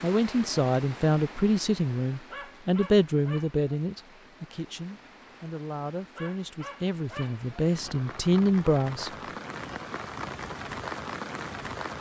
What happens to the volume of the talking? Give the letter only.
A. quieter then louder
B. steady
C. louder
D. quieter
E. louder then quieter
A.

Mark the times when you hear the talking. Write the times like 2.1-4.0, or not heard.
0.0-9.1.